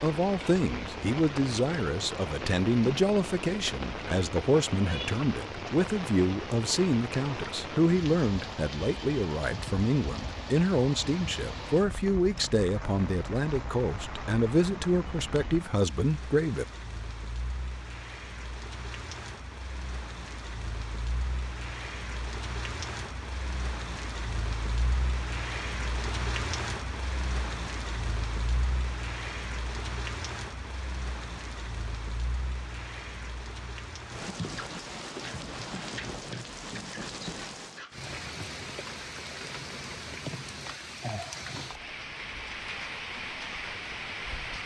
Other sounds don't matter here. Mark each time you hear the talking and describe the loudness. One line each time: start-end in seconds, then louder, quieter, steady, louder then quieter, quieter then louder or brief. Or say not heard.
0.0-16.6 steady.